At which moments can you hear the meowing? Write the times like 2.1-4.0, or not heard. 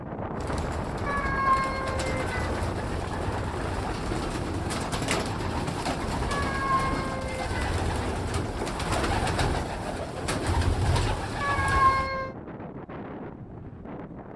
1.1-2.5, 6.2-7.5, 11.4-12.3.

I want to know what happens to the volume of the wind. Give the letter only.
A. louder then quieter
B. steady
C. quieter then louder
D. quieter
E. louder
D.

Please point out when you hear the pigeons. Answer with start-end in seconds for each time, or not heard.
0.3-12.1.